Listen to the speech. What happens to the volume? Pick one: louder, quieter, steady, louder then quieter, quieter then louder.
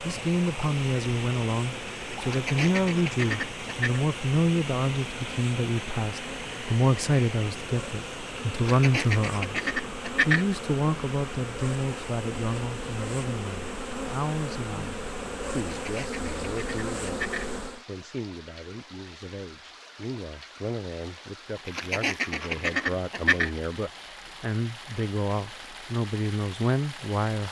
quieter then louder.